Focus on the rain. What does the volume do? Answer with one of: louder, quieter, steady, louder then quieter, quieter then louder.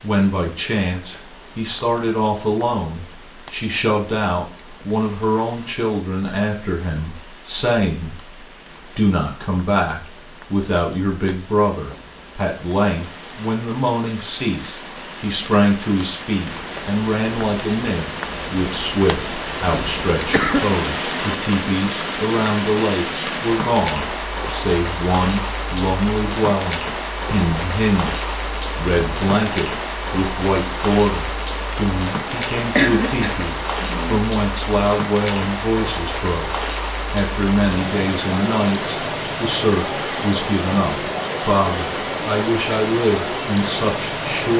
louder.